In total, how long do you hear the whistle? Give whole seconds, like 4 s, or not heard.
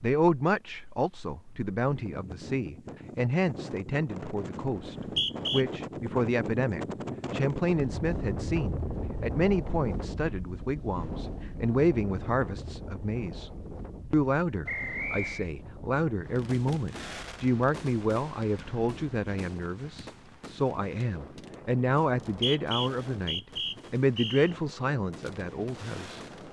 4 s.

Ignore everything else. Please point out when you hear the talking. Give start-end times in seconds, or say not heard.
0.0-13.5, 14.1-26.2.